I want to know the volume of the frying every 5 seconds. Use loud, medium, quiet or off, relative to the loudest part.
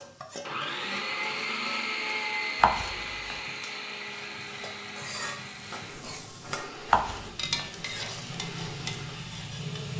medium, loud.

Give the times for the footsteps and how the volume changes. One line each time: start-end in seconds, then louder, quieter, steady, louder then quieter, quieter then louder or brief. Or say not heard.
not heard.